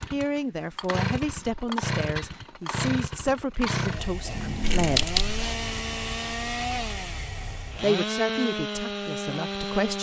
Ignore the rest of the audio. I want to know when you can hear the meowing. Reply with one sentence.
The meowing can be heard from 4.3 to 5.0 s.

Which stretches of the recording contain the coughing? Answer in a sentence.
The coughing can be heard from 4.6 to 5.5 s.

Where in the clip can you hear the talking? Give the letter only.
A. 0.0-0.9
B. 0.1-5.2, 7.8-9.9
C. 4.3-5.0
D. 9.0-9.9
B.